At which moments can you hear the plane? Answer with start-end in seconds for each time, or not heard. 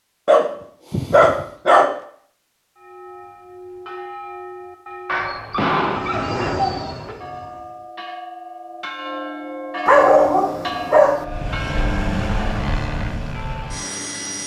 5.8-7.9, 11.2-14.4.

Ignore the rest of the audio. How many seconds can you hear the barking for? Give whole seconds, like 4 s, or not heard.
5 s.